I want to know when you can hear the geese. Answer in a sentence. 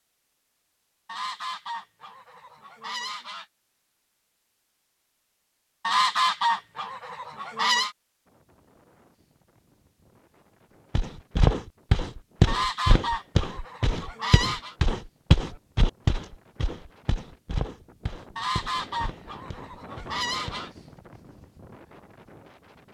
The geese can be heard from 1.1 to 3.5 s, from 5.8 to 8.0 s, from 12.4 to 14.8 s and from 18.4 to 20.7 s.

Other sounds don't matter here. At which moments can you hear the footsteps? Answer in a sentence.
The footsteps can be heard from 10.9 to 20.6 s.